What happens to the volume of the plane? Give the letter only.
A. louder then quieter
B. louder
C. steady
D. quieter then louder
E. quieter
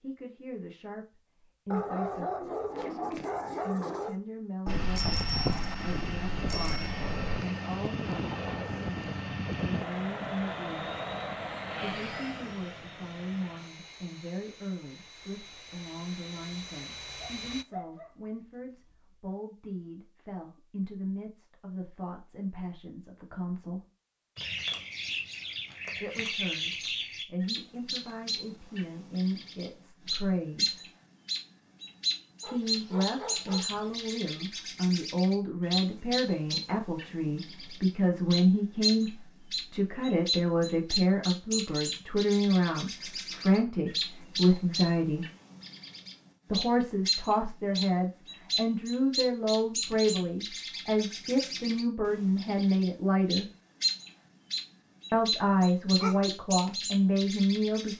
E.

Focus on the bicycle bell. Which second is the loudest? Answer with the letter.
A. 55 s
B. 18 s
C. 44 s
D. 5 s
D.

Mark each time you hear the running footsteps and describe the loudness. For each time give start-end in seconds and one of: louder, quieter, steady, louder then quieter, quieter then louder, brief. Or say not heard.
not heard.